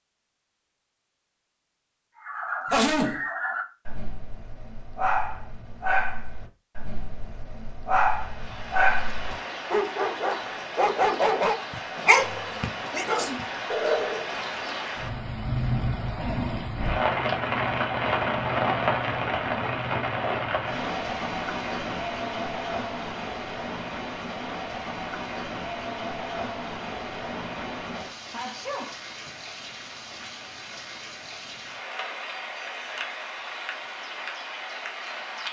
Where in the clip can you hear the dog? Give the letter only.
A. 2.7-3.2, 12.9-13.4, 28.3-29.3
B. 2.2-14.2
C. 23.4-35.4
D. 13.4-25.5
B.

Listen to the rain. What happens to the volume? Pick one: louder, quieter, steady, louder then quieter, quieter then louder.
louder then quieter.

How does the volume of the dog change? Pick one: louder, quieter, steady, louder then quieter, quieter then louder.
louder.